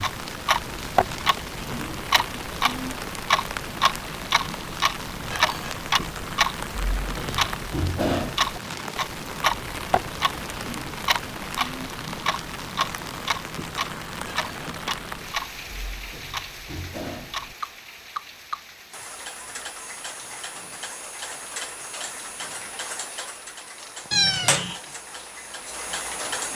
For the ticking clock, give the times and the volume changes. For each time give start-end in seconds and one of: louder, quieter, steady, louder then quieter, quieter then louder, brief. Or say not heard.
0.0-26.5 quieter.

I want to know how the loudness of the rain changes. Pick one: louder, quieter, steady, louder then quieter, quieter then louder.
quieter.